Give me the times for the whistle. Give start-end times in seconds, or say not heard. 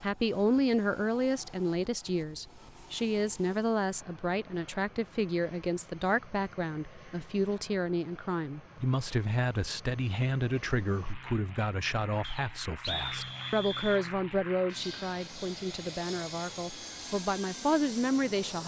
12.2-14.1.